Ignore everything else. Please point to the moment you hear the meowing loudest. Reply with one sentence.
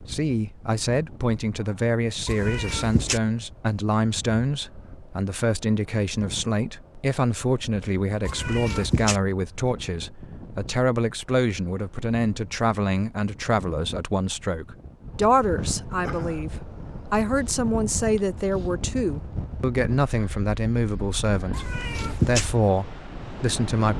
The volume of the meowing peaks at 22 seconds.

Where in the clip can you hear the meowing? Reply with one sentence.
You can hear the meowing from 2.2 to 3.2 s, from 8.2 to 9.2 s and from 21.5 to 22.4 s.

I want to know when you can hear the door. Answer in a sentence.
You can't hear the door here.